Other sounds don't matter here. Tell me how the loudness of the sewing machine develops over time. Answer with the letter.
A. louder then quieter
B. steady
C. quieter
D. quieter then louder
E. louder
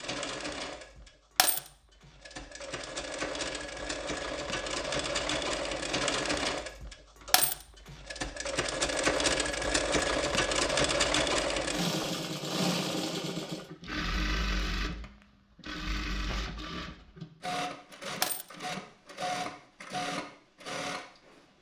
A.